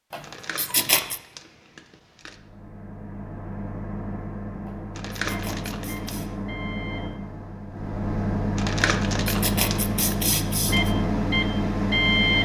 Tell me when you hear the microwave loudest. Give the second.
12 s.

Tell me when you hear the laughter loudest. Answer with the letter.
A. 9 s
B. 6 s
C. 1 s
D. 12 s
C.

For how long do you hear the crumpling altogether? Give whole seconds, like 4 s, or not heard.
5 s.